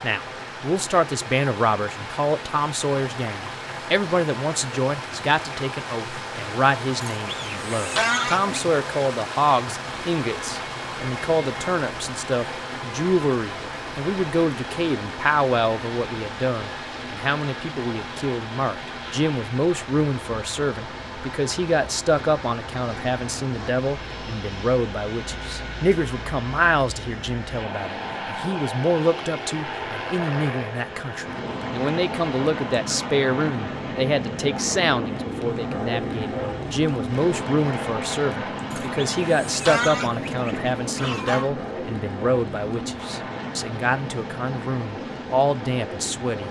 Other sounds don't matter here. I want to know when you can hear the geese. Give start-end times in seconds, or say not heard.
7.2-8.7, 38.7-41.5.